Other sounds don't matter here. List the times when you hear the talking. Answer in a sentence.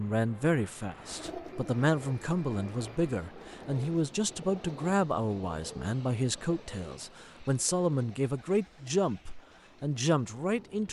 You can hear the talking from 0.0 to 10.8 s.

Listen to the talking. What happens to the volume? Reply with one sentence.
The loudness of the talking stays about the same.